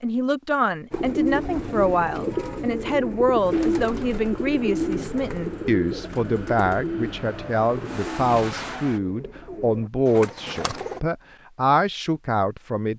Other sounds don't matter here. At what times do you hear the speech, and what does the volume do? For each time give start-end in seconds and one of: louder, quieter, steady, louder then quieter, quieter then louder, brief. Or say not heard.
0.0-12.9 steady.